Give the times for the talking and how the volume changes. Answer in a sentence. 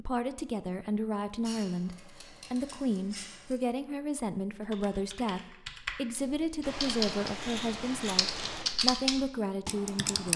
The talking can be heard from 0.0 to 10.3 s, at a steady volume.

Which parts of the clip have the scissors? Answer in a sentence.
The scissors can be heard from 1.4 to 3.6 s and from 6.6 to 8.7 s.